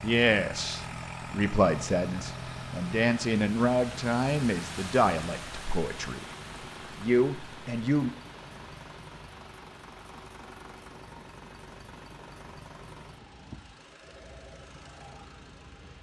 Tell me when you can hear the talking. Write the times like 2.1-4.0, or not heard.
0.0-6.2, 7.0-8.1.